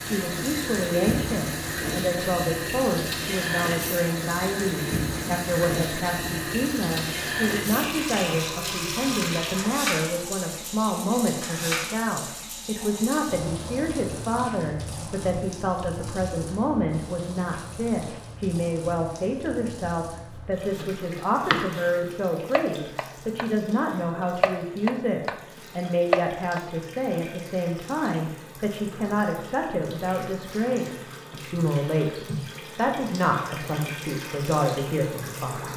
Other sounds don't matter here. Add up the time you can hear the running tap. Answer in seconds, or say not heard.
36 s.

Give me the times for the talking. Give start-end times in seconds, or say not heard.
0.0-35.7.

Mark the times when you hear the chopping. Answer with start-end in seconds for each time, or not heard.
20.8-21.9, 22.6-23.4, 24.4-25.4, 26.1-26.6.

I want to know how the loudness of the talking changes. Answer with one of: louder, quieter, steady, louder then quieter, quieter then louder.
steady.